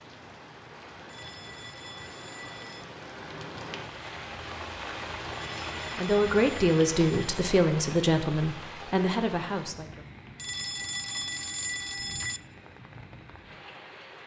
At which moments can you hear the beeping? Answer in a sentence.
You can hear the beeping from 1.1 to 2.9 s, from 5.4 to 7.3 s and from 10.3 to 12.4 s.